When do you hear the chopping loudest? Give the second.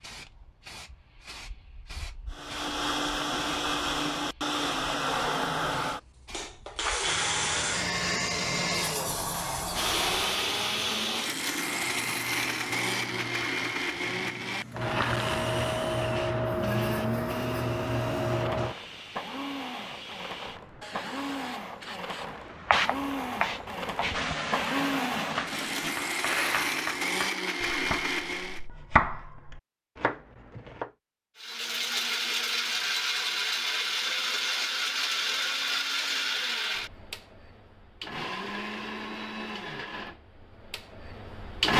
29 s.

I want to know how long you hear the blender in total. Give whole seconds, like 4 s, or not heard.
37 s.